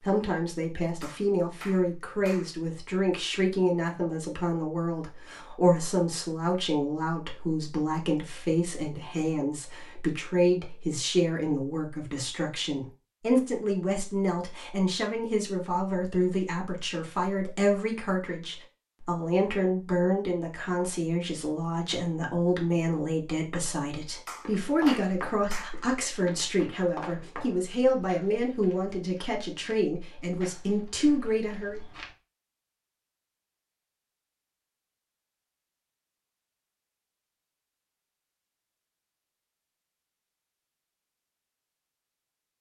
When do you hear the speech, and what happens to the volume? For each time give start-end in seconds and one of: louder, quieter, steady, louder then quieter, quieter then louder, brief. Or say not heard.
0.0-31.8 steady.